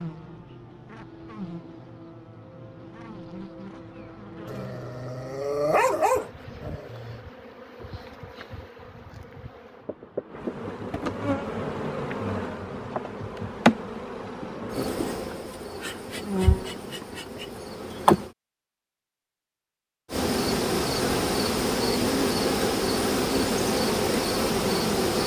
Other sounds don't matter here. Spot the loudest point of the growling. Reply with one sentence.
The volume of the growling peaks at 6 seconds.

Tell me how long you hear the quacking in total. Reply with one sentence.
You can't hear the quacking here.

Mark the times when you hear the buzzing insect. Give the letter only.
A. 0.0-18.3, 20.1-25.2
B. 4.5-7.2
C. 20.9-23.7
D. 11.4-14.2
A.